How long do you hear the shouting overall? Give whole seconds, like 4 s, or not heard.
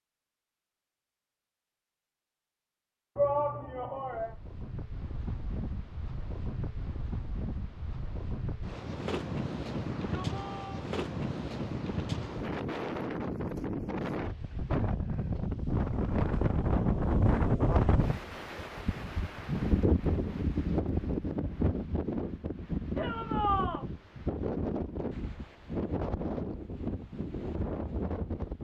3 s.